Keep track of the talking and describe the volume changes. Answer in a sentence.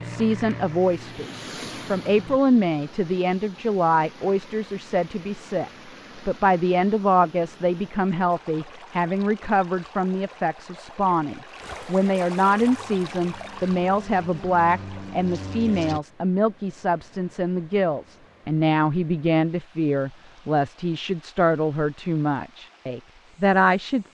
The volume of the talking stays about the same.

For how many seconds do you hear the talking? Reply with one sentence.
The talking can be heard for 24 seconds in total.